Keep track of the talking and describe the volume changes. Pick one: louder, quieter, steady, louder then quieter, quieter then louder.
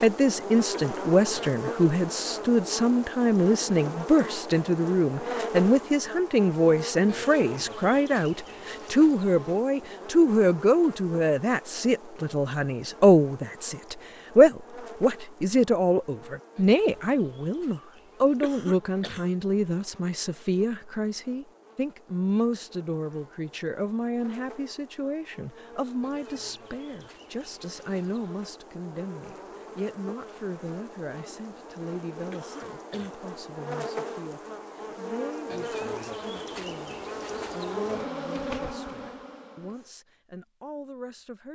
quieter.